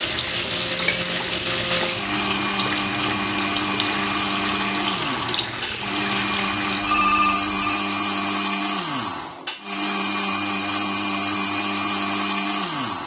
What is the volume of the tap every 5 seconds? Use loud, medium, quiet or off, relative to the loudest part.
loud, loud, off.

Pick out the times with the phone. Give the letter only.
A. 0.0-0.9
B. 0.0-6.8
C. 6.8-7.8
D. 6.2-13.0
C.